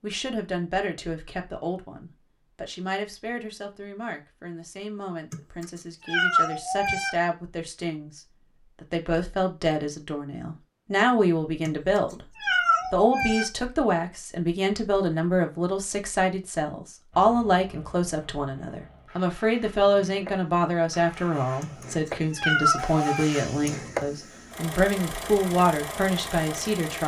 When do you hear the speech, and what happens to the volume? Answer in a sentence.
You can hear the speech from 0.0 to 27.0 s, getting louder.